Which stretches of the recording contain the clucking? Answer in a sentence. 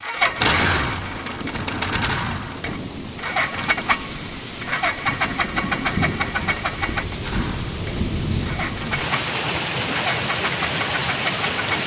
The clucking can't be heard in this clip.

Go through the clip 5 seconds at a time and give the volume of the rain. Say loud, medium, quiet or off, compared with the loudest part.
medium, loud, loud.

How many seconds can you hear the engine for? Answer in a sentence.
The engine can be heard for 12 seconds in total.